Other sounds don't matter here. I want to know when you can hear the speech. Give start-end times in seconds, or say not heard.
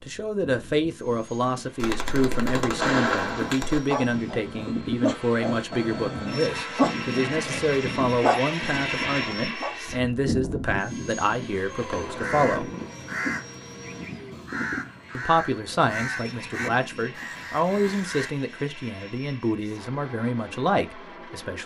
0.0-12.7, 15.2-21.6.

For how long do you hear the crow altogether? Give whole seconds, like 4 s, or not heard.
6 s.